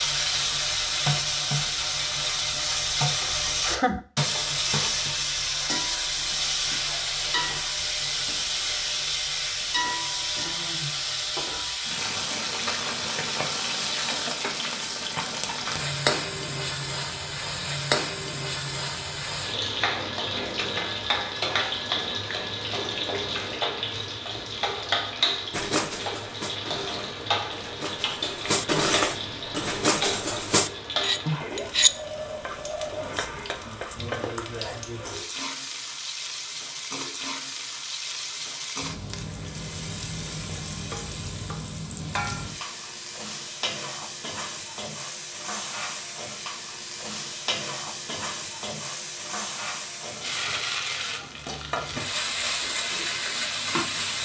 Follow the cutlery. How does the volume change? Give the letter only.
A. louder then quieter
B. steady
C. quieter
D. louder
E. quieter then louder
D.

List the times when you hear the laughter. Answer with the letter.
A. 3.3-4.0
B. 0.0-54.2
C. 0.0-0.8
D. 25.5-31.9
A.